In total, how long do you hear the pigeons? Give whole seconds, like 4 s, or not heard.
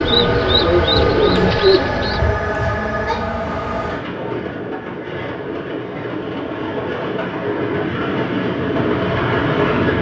2 s.